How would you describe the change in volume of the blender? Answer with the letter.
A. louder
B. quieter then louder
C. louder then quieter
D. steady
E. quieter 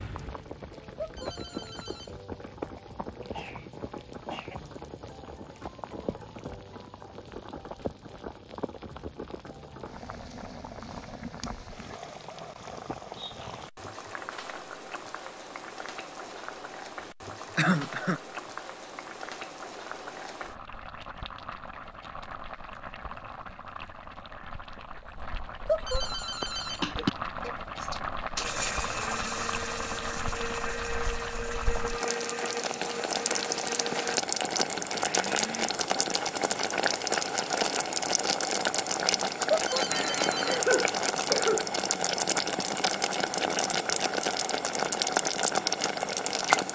E.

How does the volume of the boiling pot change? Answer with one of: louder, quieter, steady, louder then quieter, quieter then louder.
louder.